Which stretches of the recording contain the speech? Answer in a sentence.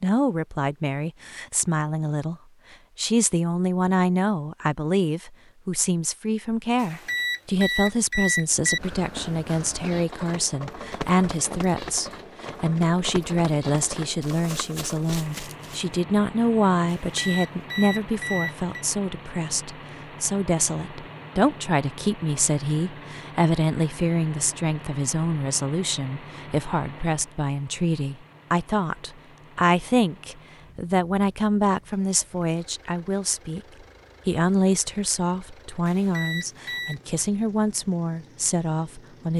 You can hear the speech from 0.0 to 2.4 s, from 3.0 to 33.6 s and from 34.2 to 39.3 s.